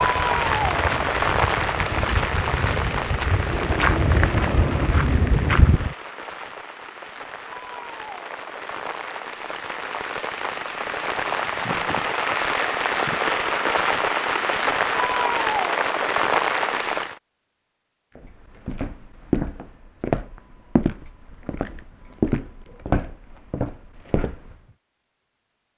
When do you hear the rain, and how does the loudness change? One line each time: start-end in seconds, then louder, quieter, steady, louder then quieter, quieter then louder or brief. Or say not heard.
0.0-17.2 quieter then louder.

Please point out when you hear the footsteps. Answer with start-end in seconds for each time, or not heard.
0.0-5.9, 18.1-24.6.